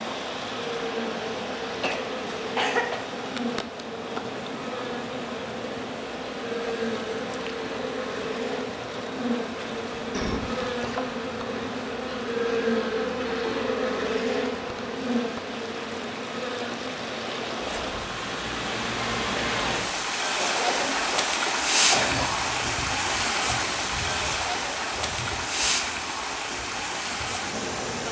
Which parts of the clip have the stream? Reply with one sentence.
You can hear the stream from 0.0 to 28.0 s.